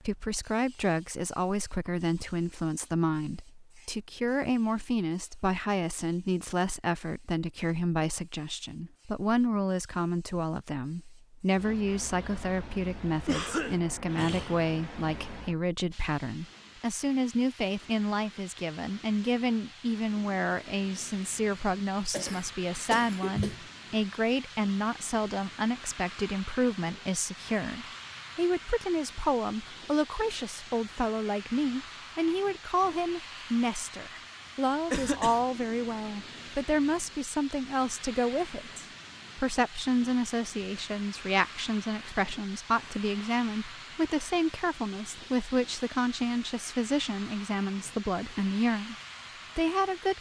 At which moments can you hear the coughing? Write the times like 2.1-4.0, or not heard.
13.2-14.7, 21.7-23.6, 34.9-35.5.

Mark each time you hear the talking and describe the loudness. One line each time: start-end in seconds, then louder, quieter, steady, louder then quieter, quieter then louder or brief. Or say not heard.
0.1-49.0 steady
49.5-50.1 brief.